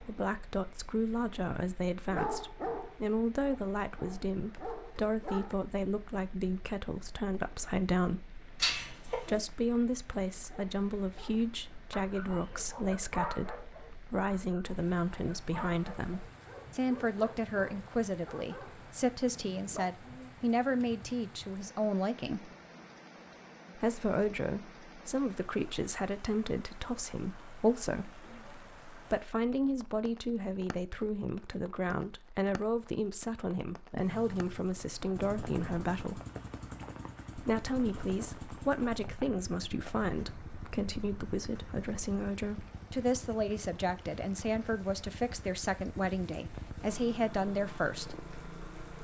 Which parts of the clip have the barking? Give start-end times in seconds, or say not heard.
2.1-5.5, 10.4-20.3.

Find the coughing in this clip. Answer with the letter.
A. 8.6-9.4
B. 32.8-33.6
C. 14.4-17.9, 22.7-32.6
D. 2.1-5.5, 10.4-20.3
A.